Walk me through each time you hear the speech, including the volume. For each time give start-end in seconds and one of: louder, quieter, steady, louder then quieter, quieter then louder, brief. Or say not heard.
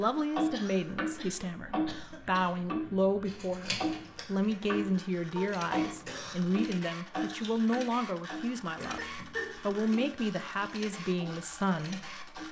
0.0-12.2 steady.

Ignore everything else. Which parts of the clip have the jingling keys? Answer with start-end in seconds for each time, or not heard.
not heard.